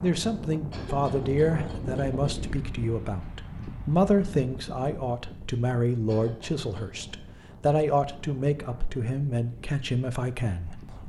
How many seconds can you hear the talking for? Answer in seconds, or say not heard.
11 s.